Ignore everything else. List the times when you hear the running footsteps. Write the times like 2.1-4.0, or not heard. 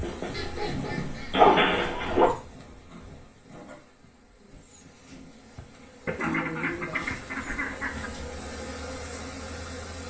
not heard.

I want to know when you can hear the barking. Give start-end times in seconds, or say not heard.
0.0-2.3.